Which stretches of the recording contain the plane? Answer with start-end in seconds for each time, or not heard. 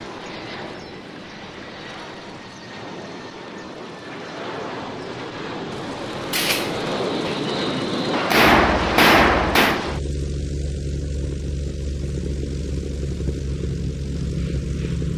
0.0-15.1.